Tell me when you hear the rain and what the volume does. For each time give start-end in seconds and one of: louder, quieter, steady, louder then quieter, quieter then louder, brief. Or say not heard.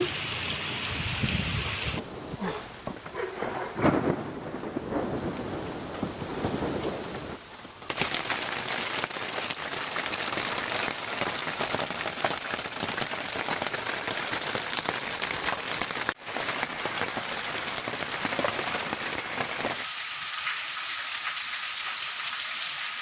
0.0-22.9 steady.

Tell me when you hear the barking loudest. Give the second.
4 s.